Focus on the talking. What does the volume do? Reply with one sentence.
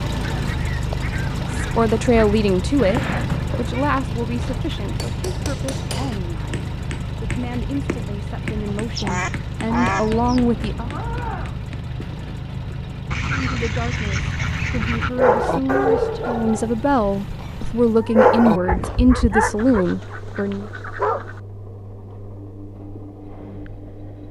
The volume of the talking goes down, then up.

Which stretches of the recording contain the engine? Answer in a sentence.
The engine can be heard from 0.0 to 24.2 s.